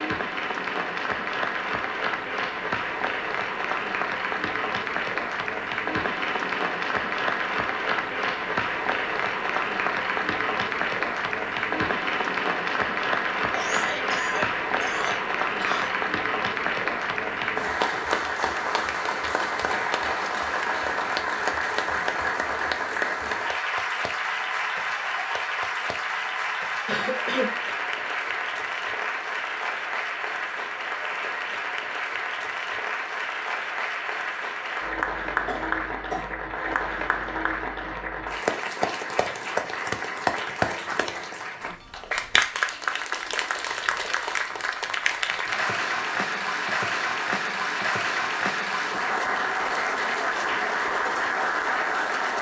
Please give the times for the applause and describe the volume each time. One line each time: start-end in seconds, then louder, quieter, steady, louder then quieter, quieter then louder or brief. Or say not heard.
0.0-52.3 steady.